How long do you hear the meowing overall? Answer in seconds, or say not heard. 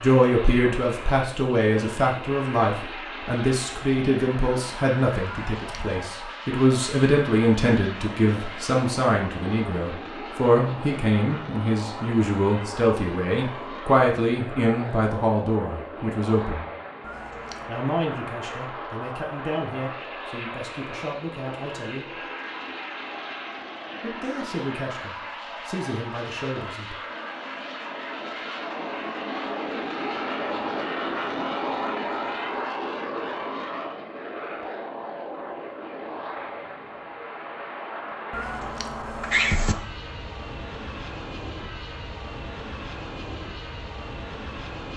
3 s.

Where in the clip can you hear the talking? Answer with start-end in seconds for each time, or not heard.
0.0-16.7, 17.6-22.1, 24.0-26.9.